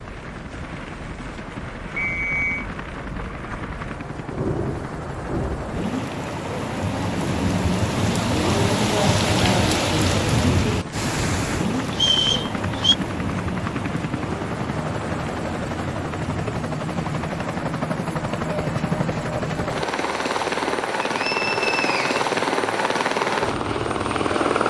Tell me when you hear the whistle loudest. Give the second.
12 s.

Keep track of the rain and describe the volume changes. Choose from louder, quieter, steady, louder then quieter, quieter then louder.
louder then quieter.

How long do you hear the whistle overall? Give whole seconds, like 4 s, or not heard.
3 s.